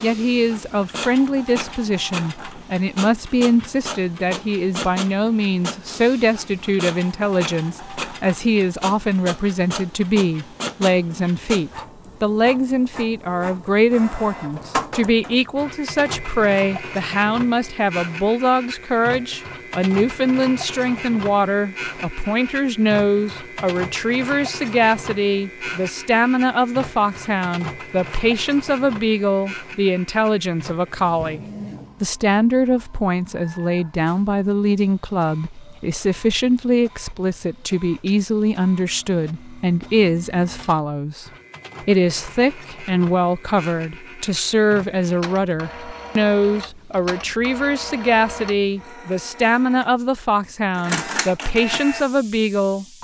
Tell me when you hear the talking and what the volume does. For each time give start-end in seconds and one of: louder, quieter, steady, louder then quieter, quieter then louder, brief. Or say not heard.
0.0-31.4 steady
32.0-53.0 steady.